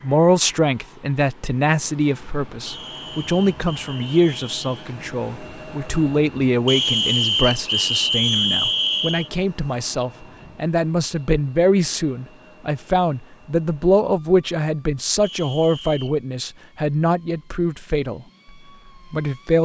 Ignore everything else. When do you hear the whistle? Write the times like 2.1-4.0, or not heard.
2.6-4.9, 6.7-9.3, 15.2-16.1.